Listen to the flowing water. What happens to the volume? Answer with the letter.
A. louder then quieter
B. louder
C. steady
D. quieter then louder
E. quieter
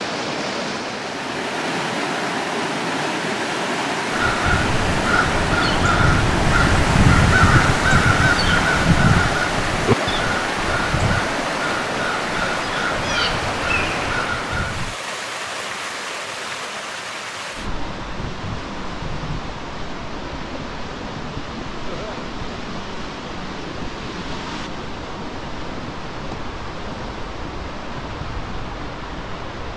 E.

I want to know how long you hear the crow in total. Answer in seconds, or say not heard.
11 s.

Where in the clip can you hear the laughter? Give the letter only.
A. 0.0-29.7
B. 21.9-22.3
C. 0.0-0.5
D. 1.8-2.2
B.